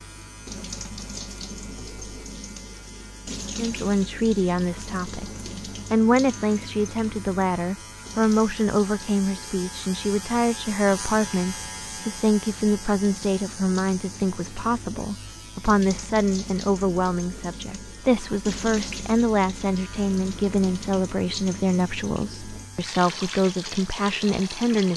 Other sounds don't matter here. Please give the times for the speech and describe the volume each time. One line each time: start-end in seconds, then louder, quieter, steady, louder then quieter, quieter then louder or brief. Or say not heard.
3.5-5.3 brief
5.9-24.9 steady.